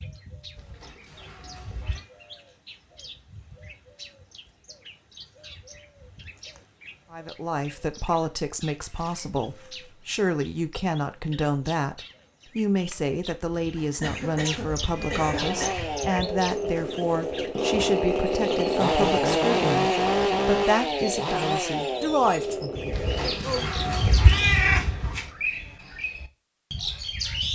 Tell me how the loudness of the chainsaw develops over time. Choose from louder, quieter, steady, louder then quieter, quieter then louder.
louder then quieter.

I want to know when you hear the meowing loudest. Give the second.
25 s.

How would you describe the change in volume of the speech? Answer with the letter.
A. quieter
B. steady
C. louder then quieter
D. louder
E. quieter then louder
B.